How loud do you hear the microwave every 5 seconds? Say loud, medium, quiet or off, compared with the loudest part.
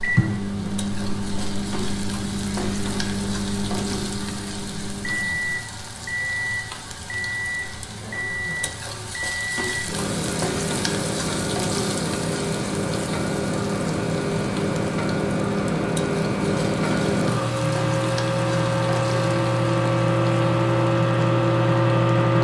medium, medium, medium, loud, loud.